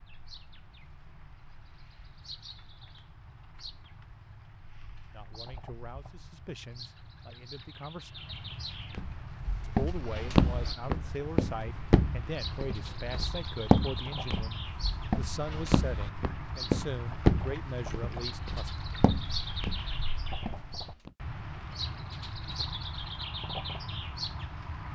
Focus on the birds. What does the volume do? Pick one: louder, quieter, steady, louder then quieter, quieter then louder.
louder.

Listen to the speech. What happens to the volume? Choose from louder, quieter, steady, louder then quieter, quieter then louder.
louder.